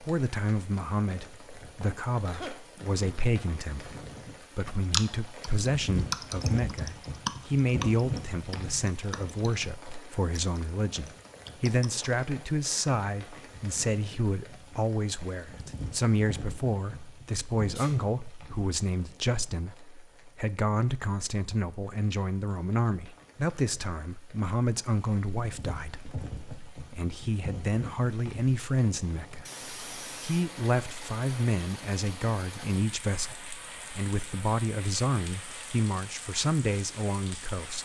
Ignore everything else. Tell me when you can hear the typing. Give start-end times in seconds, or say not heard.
4.9-9.4, 10.3-12.1.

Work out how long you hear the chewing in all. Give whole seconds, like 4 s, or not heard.
not heard.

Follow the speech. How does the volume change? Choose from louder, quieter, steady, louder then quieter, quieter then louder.
steady.